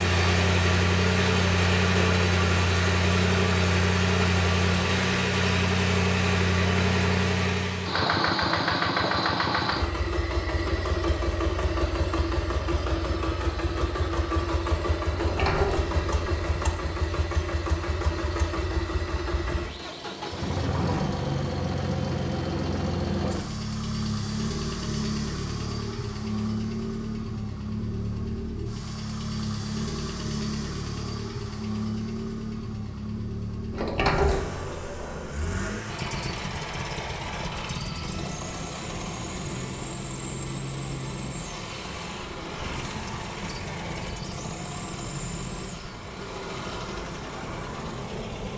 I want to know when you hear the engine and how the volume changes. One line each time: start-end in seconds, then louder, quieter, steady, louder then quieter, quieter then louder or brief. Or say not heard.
0.0-48.5 quieter.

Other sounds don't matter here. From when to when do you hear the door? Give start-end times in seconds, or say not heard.
15.1-16.6, 33.7-35.4.